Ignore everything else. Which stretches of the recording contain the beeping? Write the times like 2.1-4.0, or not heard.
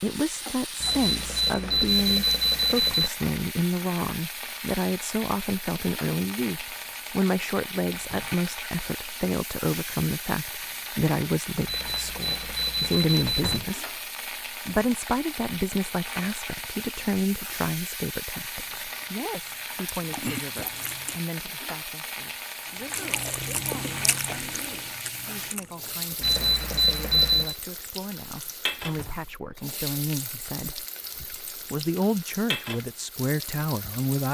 0.8-3.1, 11.7-13.6, 26.2-27.6.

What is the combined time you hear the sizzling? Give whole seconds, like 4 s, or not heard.
34 s.